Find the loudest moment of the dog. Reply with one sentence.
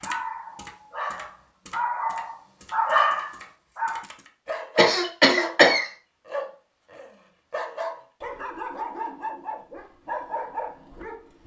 The loudest moment of the dog is at 3 seconds.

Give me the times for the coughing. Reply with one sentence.
You can hear the coughing from 4.8 to 5.8 s.